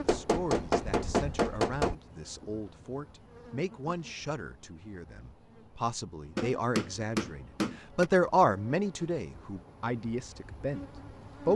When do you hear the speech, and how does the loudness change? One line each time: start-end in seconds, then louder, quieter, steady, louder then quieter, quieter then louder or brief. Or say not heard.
0.0-11.5 louder then quieter.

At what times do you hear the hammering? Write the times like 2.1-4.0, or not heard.
0.1-1.9, 6.3-8.1.